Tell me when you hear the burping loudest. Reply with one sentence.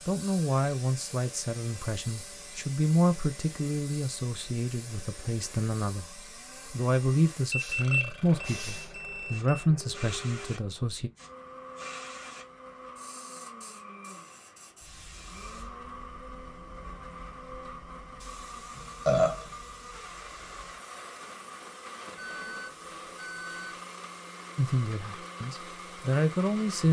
The volume of the burping peaks at 19 seconds.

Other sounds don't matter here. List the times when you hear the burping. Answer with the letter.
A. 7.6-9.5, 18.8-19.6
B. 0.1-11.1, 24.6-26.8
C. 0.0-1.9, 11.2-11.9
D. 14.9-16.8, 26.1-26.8
A.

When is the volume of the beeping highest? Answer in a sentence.
The volume of the beeping peaks at 8 seconds.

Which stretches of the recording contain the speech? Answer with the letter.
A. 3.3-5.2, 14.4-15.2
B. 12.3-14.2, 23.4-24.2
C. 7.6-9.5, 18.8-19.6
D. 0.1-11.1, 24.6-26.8
D.